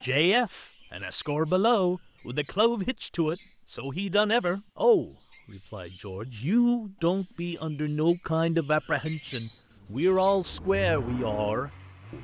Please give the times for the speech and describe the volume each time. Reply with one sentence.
You can hear the speech from 0.0 to 12.1 s, at a steady volume.